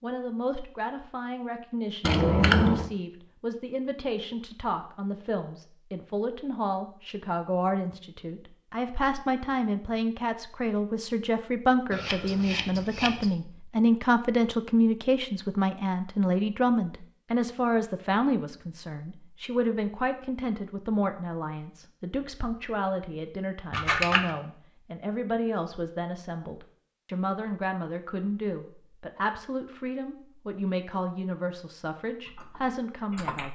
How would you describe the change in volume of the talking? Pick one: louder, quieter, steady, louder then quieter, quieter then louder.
louder then quieter.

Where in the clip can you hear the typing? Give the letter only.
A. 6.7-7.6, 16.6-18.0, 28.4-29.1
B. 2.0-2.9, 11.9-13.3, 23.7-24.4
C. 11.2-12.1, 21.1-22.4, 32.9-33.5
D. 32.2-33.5
D.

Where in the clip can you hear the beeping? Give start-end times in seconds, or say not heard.
not heard.